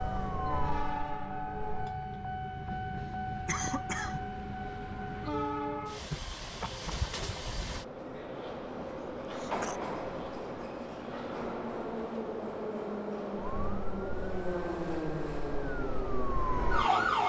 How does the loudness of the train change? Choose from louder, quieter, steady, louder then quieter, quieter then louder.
steady.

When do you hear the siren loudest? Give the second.
17 s.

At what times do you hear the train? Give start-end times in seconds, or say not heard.
0.0-17.2.